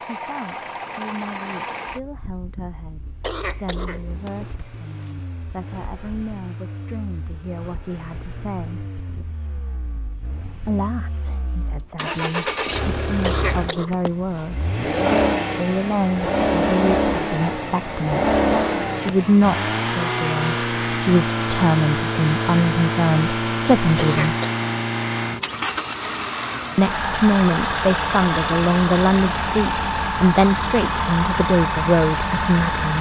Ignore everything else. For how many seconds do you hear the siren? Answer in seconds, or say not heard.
not heard.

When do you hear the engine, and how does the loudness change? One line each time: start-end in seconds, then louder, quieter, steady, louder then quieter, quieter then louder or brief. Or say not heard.
0.0-32.9 louder.